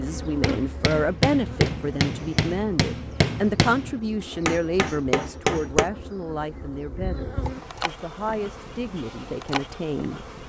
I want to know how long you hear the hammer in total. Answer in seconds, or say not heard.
6 s.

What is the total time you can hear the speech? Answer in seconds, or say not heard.
10 s.